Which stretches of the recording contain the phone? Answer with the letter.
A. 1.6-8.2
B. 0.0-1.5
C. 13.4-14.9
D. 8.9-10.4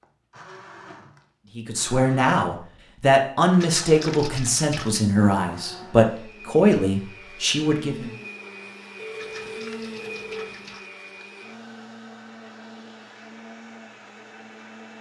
D.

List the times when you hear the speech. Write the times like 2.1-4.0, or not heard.
1.6-8.2.